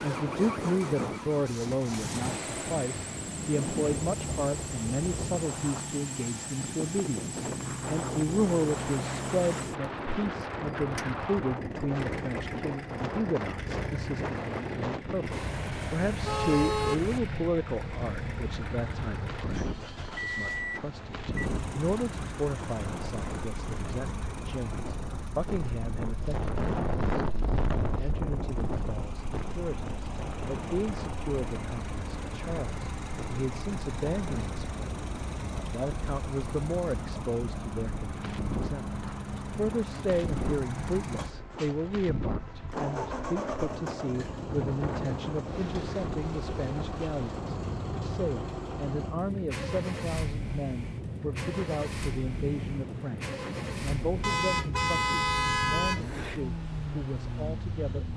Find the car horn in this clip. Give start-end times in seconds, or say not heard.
15.3-17.2, 54.2-56.0.